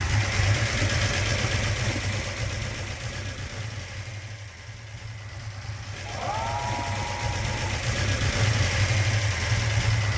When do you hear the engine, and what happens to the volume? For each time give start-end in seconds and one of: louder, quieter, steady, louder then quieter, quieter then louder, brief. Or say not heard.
0.0-10.1 quieter then louder.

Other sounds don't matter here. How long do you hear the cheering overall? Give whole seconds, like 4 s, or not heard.
2 s.